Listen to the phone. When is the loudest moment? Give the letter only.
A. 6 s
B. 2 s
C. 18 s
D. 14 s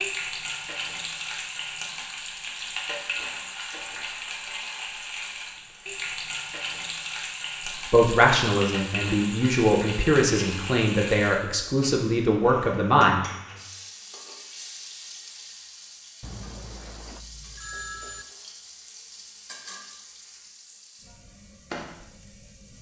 C.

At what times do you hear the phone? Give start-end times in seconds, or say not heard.
16.2-18.2.